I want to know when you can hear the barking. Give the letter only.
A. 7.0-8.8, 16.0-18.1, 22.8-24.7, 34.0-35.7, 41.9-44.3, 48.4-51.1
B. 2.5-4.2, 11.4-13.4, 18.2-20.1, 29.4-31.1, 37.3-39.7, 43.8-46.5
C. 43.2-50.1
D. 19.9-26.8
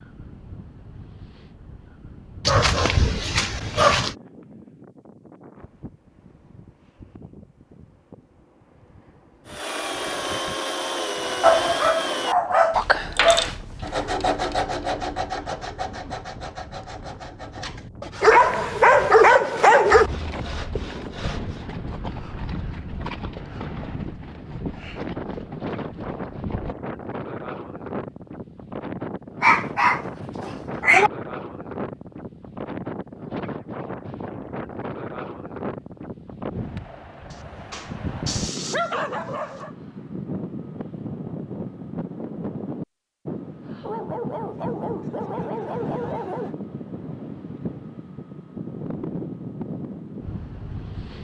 B.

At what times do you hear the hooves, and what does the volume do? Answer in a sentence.
The hooves can be heard from 19.9 to 26.8 s, at a steady volume.